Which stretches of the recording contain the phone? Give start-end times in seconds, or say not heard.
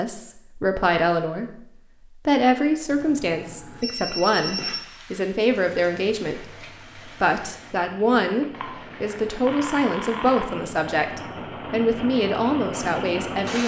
2.9-4.8, 8.5-10.4.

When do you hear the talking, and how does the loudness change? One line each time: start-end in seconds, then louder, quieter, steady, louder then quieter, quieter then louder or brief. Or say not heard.
0.0-13.6 steady.